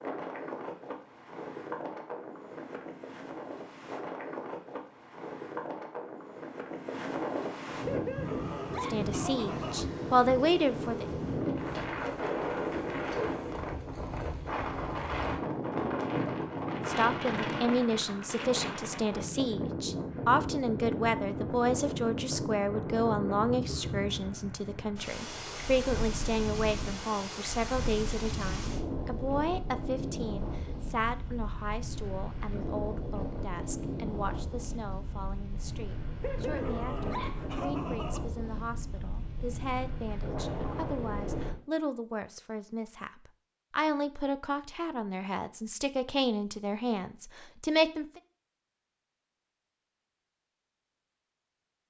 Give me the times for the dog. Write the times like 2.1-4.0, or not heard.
7.8-9.8, 36.2-38.2.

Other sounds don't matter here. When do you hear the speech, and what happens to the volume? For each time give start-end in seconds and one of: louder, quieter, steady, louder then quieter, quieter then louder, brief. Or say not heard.
8.8-11.1 brief
16.8-48.2 quieter then louder.